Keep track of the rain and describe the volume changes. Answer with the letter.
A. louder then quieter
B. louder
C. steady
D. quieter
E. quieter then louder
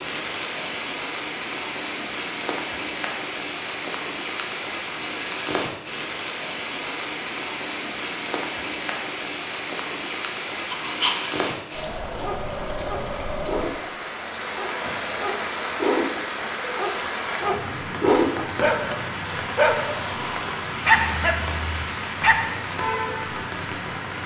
C.